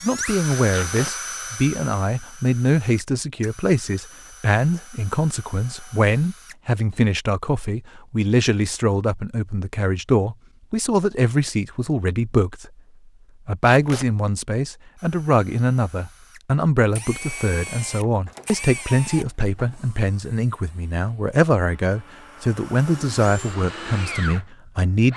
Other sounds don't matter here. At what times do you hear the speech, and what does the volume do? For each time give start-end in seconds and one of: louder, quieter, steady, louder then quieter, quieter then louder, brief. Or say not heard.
0.0-12.7 steady
13.4-25.1 steady.